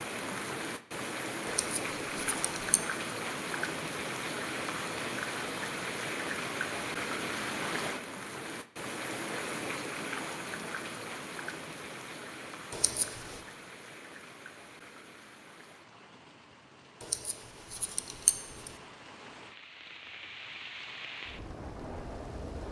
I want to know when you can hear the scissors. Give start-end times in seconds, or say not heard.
1.4-2.8, 12.7-13.4, 17.0-18.7.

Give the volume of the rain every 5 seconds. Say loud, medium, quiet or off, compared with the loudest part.
loud, loud, medium, quiet, medium.